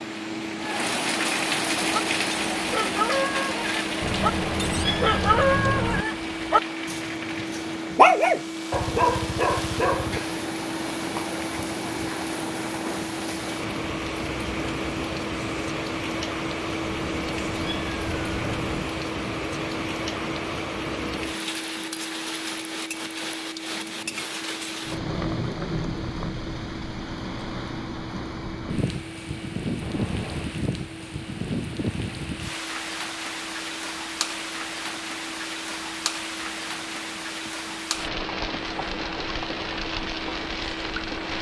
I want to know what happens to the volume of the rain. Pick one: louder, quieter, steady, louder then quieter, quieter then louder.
steady.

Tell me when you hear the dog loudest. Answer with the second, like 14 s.
8 s.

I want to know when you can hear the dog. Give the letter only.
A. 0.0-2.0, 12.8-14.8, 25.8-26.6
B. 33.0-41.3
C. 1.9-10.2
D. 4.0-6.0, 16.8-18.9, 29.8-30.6
C.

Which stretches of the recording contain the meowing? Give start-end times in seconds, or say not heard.
4.0-6.0, 16.8-18.9, 29.8-30.6.